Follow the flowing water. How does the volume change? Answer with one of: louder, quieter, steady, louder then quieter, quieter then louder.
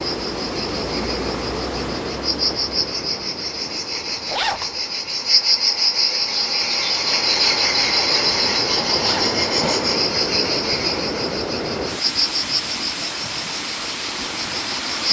quieter then louder.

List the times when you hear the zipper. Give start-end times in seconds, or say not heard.
4.2-4.7, 8.9-9.3.